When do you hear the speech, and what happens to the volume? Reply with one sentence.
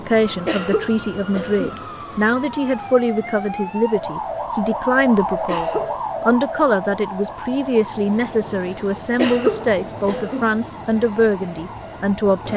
You can hear the speech from 0.0 to 12.5 s, at a steady volume.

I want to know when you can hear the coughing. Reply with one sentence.
You can hear the coughing from 0.5 to 1.8 s, from 5.2 to 6.0 s and from 9.2 to 10.5 s.